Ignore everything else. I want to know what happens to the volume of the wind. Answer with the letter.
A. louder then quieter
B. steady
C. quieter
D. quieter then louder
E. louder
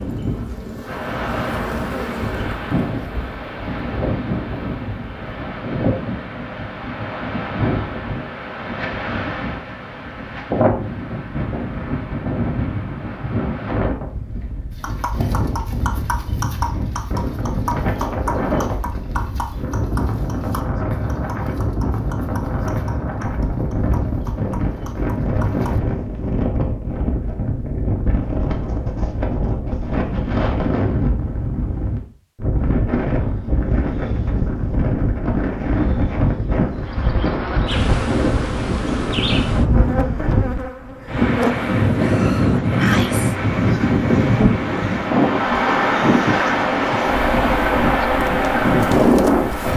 E.